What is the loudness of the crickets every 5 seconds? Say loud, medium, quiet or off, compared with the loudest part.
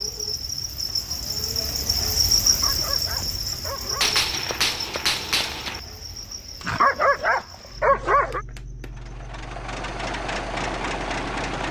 loud, quiet, quiet.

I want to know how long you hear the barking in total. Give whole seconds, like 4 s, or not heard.
4 s.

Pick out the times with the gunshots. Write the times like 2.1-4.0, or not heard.
4.0-5.8.